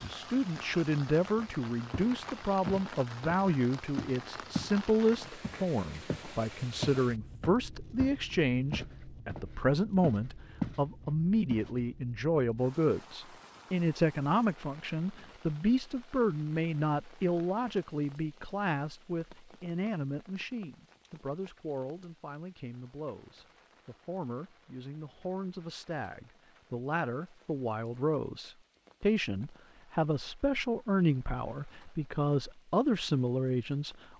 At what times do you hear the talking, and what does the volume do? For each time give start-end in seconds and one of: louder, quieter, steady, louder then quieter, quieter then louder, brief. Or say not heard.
0.0-34.0 quieter then louder.